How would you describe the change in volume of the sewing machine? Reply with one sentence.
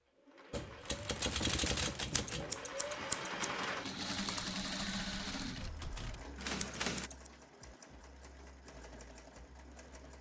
The volume of the sewing machine goes up, then down.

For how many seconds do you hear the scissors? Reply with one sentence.
The scissors can be heard for 2 seconds in total.